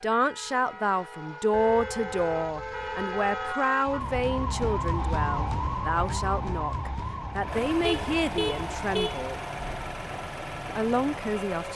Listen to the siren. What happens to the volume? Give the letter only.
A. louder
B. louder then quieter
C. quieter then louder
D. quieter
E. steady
B.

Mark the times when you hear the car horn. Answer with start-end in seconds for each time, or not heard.
1.5-3.5, 7.8-9.3.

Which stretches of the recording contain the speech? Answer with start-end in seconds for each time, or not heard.
0.0-9.4, 10.7-11.7.